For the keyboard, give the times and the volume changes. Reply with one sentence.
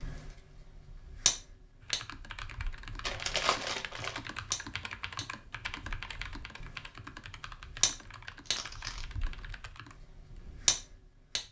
The keyboard can be heard from 1.8 to 10.8 s, getting quieter.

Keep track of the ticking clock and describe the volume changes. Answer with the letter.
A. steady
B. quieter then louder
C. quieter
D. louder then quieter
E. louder
B.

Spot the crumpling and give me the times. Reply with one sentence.
The crumpling can be heard from 3.0 to 4.2 s and from 8.4 to 9.1 s.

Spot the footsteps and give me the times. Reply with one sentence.
The footsteps can't be heard in this clip.